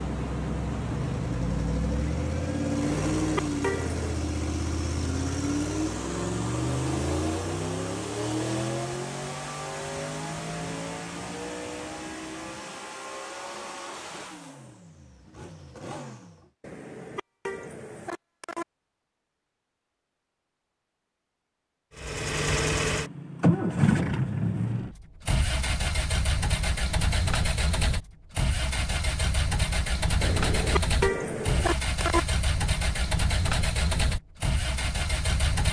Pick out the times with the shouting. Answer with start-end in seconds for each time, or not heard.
not heard.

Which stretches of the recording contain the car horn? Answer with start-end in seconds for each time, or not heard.
2.8-4.2, 16.6-18.6, 30.2-32.2.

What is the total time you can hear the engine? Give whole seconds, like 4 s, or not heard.
30 s.